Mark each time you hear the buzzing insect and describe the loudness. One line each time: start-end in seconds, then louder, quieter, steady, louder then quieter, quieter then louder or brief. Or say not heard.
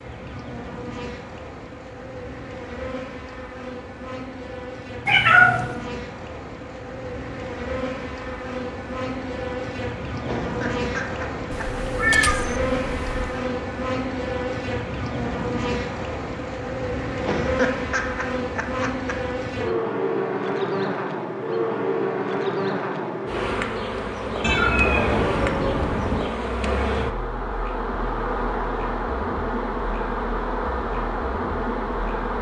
0.0-32.3 louder.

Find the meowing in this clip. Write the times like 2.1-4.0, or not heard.
5.0-5.7, 11.5-13.4, 24.4-26.2.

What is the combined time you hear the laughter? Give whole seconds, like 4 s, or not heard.
3 s.